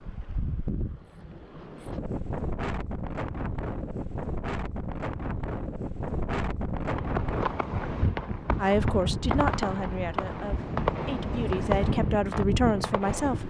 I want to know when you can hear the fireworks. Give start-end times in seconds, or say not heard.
6.8-13.4.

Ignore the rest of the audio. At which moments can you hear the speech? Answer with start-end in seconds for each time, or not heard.
8.6-13.4.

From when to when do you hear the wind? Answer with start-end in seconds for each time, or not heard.
0.0-13.4.